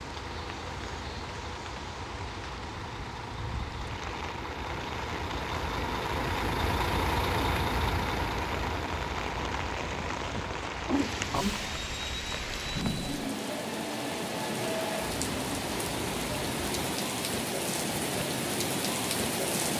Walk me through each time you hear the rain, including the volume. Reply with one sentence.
You can hear the rain from 0.0 to 19.7 s, getting louder.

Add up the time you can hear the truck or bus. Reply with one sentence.
You can hear the truck or bus for 17 seconds altogether.